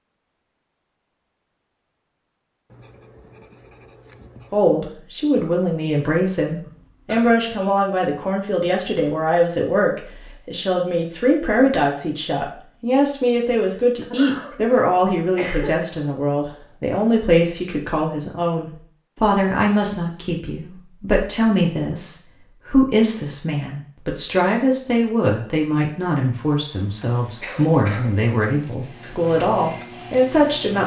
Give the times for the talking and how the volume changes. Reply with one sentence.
You can hear the talking from 4.5 to 30.8 s, at a steady volume.